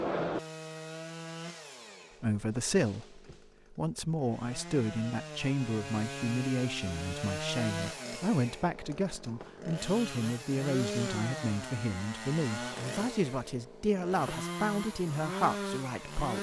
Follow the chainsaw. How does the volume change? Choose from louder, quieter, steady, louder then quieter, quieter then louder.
louder.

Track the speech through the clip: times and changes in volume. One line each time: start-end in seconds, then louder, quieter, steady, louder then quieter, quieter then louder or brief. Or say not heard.
2.2-16.3 steady.